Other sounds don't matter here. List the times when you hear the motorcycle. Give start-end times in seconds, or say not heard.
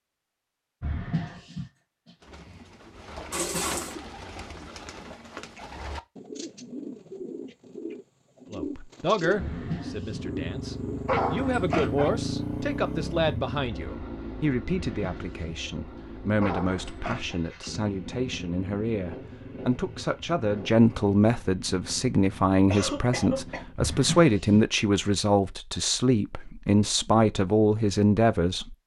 9.2-23.8.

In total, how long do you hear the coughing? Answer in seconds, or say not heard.
2 s.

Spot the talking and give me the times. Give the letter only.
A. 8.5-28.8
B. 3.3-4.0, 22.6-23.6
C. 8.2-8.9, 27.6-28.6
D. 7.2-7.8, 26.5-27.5
A.